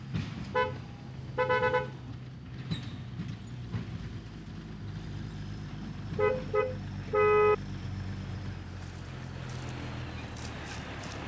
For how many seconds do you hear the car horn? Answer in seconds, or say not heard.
3 s.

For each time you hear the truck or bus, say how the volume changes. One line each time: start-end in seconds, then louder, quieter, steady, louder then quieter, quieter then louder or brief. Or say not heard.
0.0-11.2 steady.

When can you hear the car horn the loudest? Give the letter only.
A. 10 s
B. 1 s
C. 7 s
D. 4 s
C.